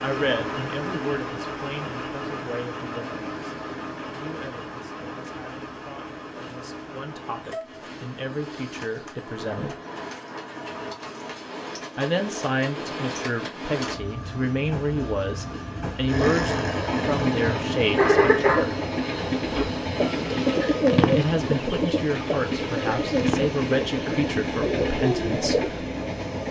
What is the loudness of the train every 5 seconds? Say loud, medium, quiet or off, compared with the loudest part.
medium, medium, medium, loud, loud, loud.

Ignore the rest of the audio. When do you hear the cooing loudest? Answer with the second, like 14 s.
21 s.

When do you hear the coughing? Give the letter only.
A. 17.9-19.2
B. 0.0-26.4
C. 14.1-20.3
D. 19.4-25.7
A.